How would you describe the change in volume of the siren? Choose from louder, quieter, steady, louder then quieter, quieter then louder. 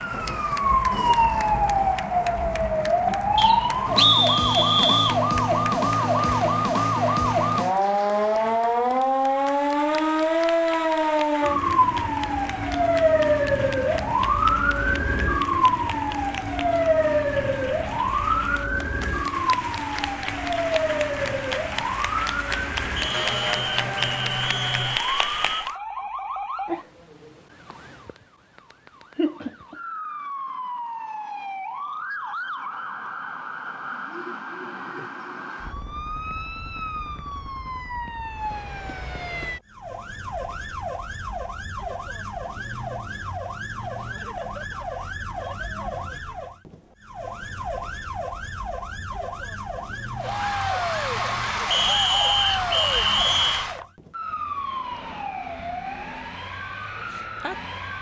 quieter.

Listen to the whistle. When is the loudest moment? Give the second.
4 s.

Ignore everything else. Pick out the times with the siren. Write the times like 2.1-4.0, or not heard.
0.0-57.9.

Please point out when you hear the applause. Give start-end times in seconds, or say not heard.
0.0-25.8, 50.1-53.9.